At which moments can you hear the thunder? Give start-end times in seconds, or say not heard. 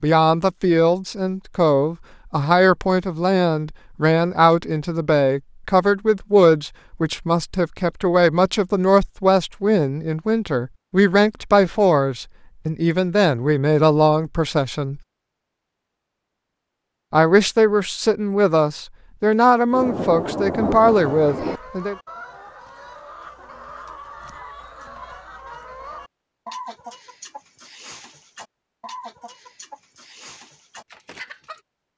19.7-21.6.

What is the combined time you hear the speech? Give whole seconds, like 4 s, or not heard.
20 s.